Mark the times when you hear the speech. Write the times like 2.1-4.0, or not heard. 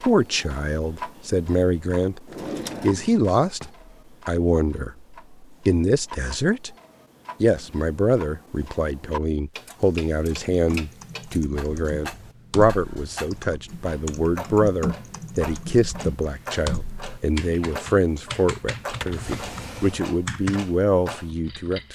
0.0-2.2, 2.8-6.8, 7.4-21.9.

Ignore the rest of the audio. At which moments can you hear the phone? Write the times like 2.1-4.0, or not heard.
not heard.